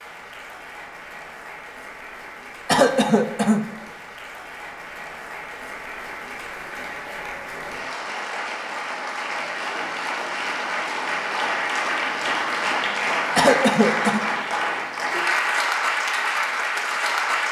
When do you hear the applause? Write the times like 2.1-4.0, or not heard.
0.0-17.4.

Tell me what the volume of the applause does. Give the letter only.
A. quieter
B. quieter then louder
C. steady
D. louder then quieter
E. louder
E.